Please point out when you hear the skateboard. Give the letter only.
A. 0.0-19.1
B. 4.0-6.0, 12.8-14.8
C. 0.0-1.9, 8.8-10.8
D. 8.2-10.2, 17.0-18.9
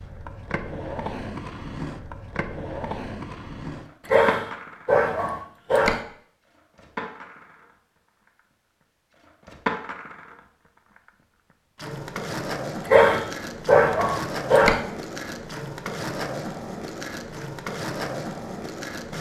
A.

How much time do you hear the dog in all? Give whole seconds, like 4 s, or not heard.
4 s.